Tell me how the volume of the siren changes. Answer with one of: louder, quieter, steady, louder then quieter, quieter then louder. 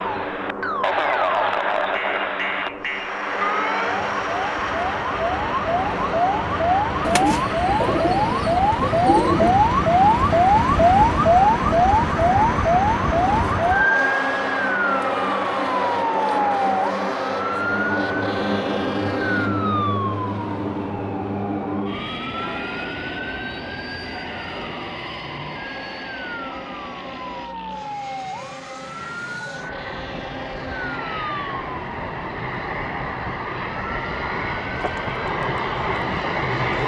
louder then quieter.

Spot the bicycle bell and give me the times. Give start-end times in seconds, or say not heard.
not heard.